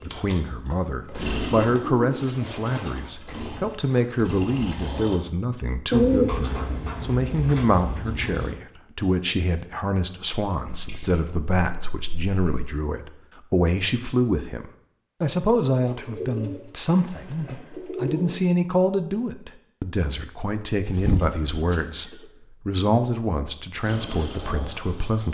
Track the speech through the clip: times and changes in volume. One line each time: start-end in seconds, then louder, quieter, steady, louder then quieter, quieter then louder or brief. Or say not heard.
0.0-25.3 steady.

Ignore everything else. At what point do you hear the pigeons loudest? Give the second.
6 s.